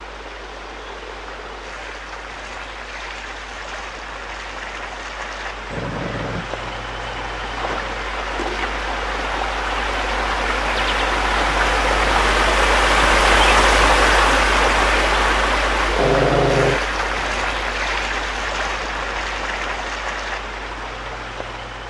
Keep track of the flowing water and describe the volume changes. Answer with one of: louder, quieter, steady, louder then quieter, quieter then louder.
louder then quieter.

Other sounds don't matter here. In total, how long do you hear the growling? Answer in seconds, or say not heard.
2 s.